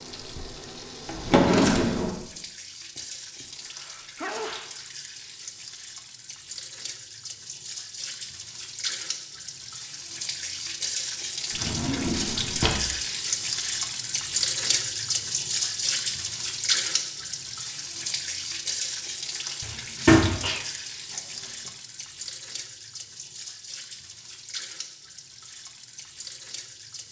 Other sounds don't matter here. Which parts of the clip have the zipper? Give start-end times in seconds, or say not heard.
not heard.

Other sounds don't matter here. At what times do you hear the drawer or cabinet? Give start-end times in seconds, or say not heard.
1.1-2.1, 11.6-12.8, 19.6-20.4.